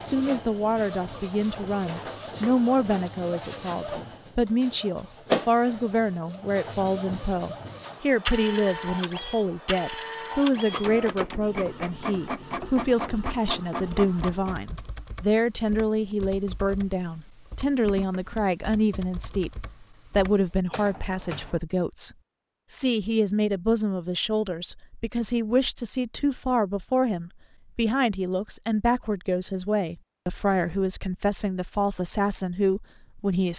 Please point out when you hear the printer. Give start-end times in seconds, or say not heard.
0.0-14.6.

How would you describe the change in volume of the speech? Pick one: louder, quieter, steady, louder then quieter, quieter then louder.
steady.